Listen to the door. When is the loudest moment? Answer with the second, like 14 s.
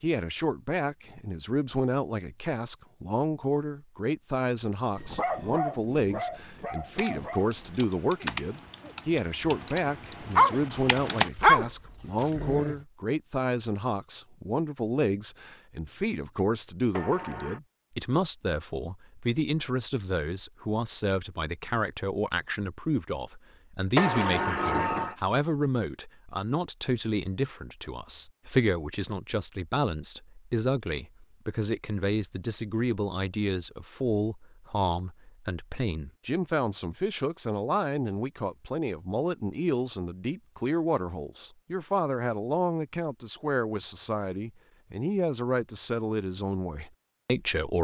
24 s.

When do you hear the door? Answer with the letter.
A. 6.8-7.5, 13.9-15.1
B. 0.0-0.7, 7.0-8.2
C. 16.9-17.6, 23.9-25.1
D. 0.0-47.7
C.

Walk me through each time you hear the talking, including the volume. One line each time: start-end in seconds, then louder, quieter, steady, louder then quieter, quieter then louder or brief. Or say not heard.
0.0-47.7 steady.